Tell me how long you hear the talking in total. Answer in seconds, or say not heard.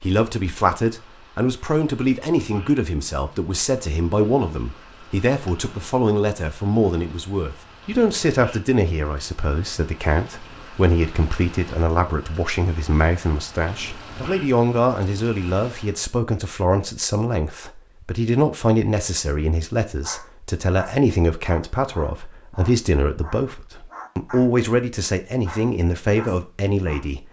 27 s.